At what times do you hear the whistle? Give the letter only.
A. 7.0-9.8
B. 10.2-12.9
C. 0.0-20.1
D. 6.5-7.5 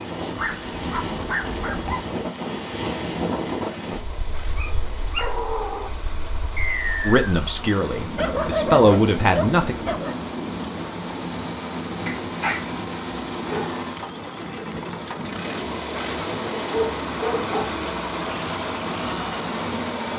D.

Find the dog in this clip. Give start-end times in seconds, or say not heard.
0.3-2.0, 4.1-5.9, 8.2-10.2, 12.1-13.8, 16.6-18.1.